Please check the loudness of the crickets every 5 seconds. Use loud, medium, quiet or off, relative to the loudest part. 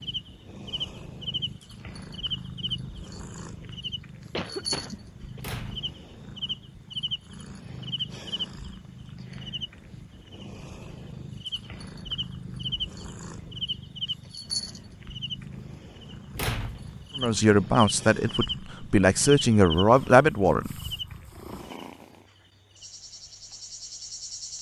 loud, loud, loud, loud, medium.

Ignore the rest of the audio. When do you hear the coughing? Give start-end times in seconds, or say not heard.
4.2-5.4.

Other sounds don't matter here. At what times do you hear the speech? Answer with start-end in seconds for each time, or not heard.
17.1-20.8.